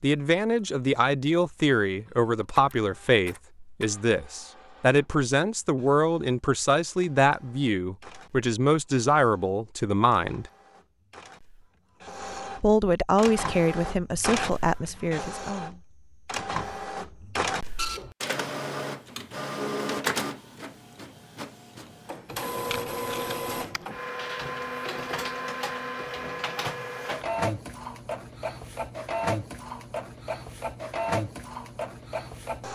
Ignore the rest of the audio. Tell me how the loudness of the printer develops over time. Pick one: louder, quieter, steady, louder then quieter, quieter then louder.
louder.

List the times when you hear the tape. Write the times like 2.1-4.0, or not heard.
22.6-23.9.